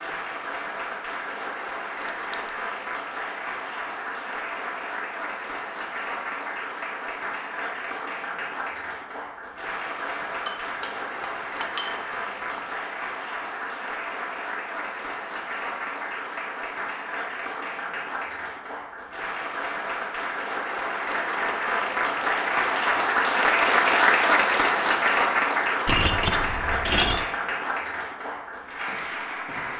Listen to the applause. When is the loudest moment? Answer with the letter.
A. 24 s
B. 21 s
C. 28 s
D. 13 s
A.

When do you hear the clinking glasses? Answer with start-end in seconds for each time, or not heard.
2.0-2.6, 10.4-12.7, 25.9-27.2.